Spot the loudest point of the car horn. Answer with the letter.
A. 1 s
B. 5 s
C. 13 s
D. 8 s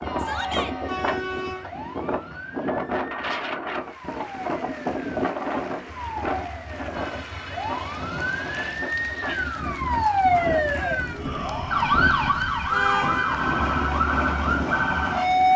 C.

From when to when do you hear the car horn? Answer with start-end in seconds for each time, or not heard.
0.0-1.6, 6.9-8.7, 12.7-13.4.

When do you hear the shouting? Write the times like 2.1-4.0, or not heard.
0.1-0.8, 11.1-12.3.